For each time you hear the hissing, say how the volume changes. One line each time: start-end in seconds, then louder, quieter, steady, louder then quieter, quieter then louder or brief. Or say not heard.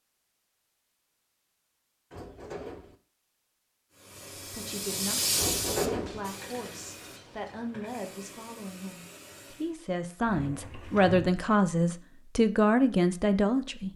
3.9-9.8 quieter.